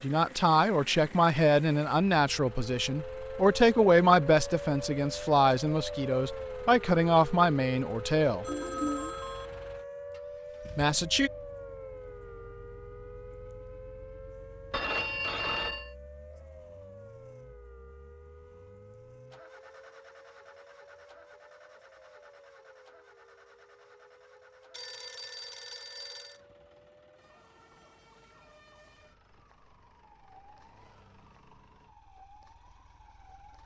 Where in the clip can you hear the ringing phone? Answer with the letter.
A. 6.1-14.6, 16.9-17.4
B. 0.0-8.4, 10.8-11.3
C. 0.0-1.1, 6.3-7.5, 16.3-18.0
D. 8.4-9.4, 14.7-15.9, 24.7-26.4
D.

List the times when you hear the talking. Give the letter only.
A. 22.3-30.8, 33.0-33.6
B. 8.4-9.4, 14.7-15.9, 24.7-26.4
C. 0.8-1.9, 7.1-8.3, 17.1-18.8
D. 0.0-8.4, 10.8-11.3
D.